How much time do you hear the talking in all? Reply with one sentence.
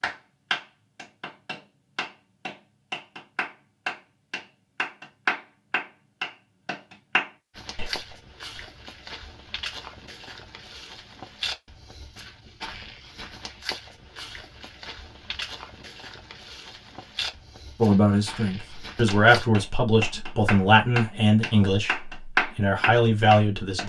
The talking can be heard for 6 seconds in total.